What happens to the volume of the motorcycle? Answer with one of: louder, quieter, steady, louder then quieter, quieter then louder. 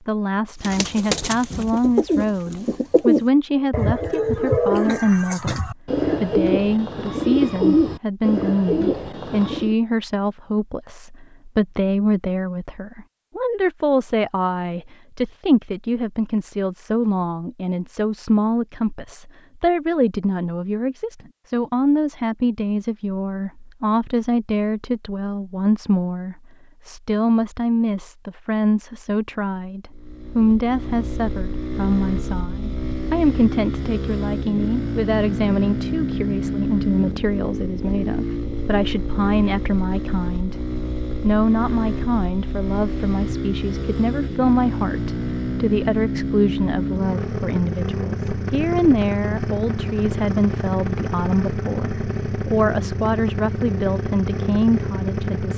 steady.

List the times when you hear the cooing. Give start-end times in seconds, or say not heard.
0.6-9.8.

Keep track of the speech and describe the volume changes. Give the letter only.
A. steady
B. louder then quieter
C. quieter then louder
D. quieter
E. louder
A.